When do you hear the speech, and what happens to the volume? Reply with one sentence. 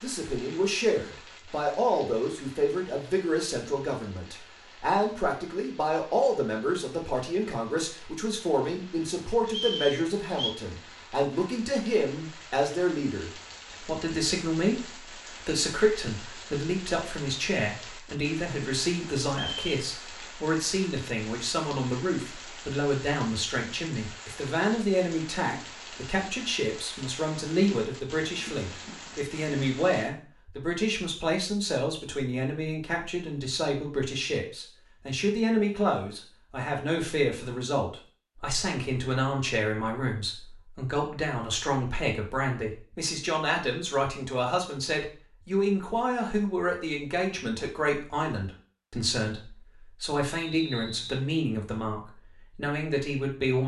The speech can be heard from 0.0 to 14.8 s, at a steady volume; and from 15.4 to 53.6 s, at a steady volume.